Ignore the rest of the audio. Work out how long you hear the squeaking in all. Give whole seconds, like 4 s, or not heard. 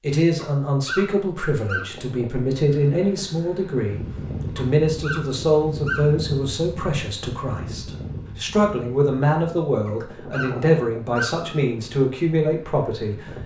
5 s.